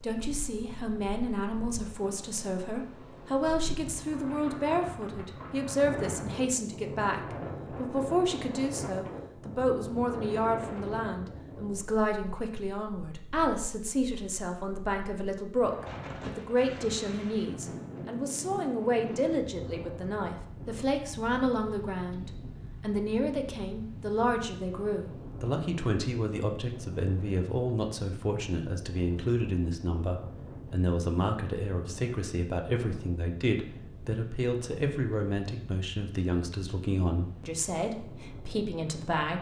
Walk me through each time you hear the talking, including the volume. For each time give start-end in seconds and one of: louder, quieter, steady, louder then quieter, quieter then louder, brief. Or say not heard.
0.0-39.3 steady.